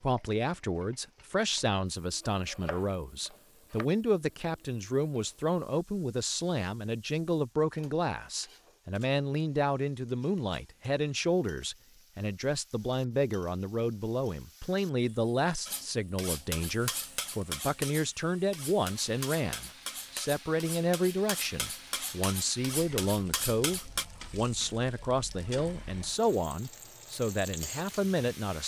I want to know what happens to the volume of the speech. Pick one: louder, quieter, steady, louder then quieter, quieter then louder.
steady.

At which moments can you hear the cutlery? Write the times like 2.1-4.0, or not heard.
15.7-24.1.